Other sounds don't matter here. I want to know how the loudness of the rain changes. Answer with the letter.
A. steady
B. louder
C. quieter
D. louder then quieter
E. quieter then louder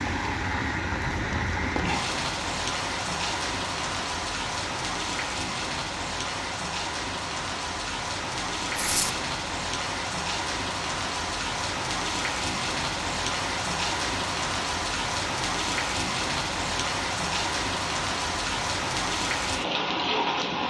A.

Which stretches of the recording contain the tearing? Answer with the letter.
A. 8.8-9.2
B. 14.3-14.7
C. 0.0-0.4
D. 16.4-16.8
A.